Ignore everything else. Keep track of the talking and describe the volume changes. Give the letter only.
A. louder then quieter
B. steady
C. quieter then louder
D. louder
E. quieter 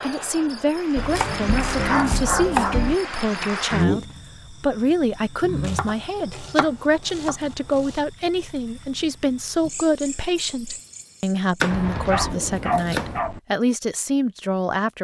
B.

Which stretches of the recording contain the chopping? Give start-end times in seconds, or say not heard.
0.9-3.0, 5.6-8.0, 11.6-13.2.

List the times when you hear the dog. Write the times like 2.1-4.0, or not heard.
1.8-3.3, 11.7-13.4.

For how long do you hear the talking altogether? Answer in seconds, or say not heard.
15 s.